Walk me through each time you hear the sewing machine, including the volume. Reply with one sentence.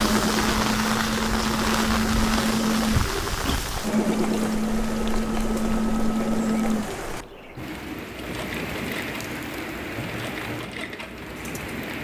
The sewing machine can be heard from 0.0 to 11.7 s, getting quieter.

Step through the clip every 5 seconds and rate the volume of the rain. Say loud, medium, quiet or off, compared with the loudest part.
loud, medium, medium.